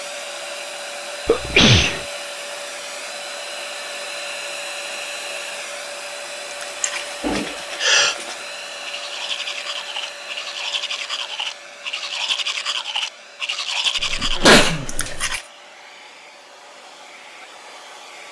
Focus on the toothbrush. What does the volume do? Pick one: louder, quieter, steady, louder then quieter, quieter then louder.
louder.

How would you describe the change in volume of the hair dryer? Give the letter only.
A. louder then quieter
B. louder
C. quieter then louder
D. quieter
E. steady
D.